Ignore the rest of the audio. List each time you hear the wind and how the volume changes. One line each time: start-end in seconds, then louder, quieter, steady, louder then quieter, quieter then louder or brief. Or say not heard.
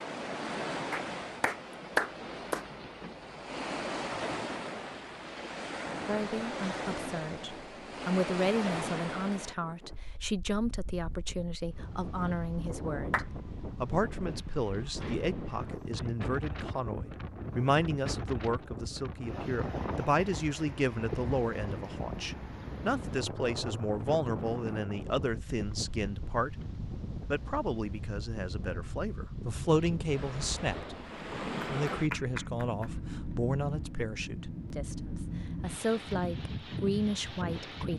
0.0-37.9 steady.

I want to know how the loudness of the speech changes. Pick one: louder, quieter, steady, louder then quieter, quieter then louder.
steady.